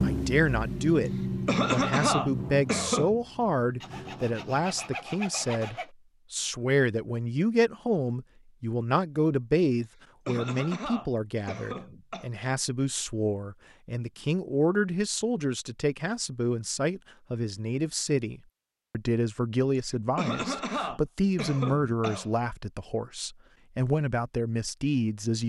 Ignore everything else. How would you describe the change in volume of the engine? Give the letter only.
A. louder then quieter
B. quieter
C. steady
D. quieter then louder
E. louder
D.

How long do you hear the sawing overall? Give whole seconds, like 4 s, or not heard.
2 s.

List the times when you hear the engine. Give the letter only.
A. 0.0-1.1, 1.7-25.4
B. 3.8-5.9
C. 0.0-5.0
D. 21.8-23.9
C.